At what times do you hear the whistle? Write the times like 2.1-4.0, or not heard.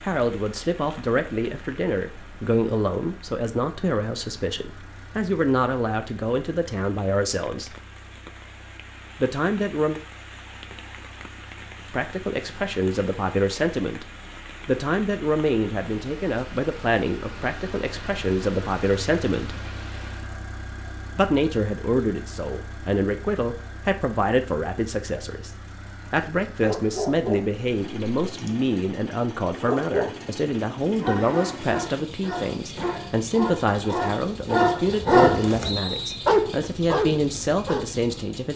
35.6-36.3.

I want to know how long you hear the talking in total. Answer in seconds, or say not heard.
32 s.